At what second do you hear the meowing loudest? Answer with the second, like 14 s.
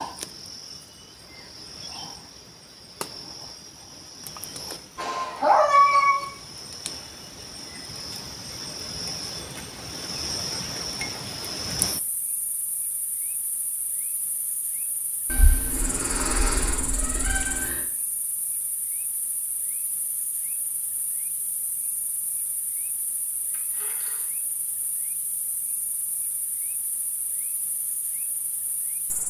6 s.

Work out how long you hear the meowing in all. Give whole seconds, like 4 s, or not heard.
4 s.